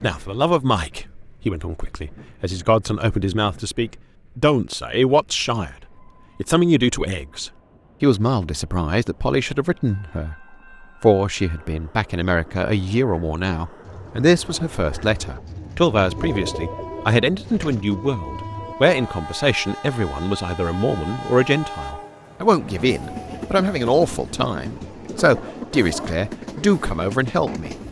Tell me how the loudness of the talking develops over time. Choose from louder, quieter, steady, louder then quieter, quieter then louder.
steady.